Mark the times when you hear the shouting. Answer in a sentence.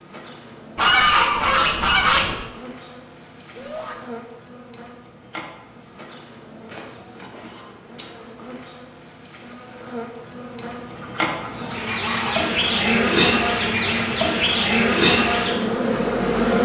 You can hear the shouting from 3.5 to 4.0 s.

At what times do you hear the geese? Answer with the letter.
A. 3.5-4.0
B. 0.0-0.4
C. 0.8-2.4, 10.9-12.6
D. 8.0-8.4
C.